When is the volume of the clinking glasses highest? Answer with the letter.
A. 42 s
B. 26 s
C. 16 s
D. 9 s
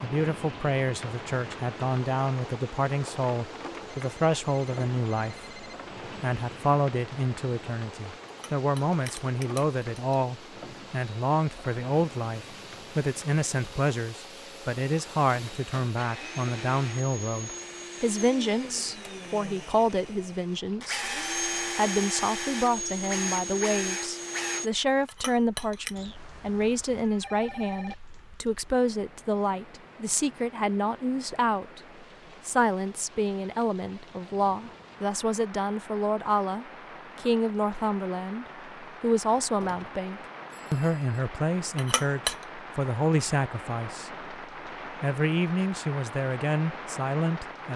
A.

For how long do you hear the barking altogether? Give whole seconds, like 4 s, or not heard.
not heard.